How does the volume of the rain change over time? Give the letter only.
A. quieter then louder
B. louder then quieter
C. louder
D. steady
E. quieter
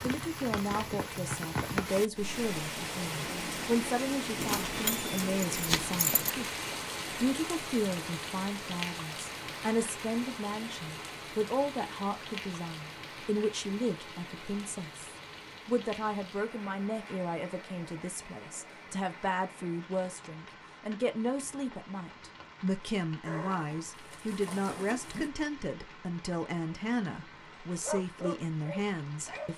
E.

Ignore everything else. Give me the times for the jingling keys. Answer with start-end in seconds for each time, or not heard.
4.3-6.3.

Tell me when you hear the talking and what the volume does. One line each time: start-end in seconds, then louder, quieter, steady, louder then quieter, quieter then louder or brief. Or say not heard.
0.0-29.5 steady.